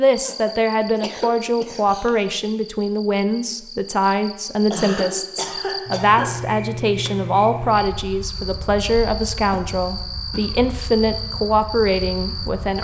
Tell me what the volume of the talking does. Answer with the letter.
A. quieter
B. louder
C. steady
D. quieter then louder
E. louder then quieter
C.